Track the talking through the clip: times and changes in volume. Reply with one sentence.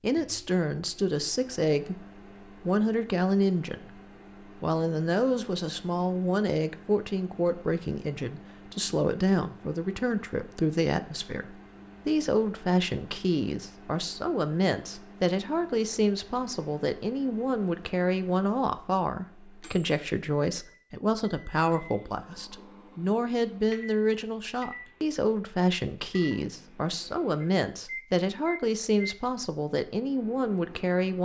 You can hear the talking from 0.0 to 31.1 s, at a steady volume.